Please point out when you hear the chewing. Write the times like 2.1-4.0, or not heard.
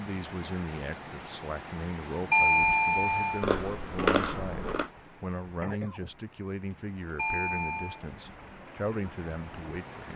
3.4-4.9.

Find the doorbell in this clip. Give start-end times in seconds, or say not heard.
2.3-3.5, 7.2-8.0.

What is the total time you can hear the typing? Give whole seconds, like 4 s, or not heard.
not heard.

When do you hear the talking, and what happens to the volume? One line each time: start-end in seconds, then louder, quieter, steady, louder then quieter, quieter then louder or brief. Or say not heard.
0.0-10.1 steady.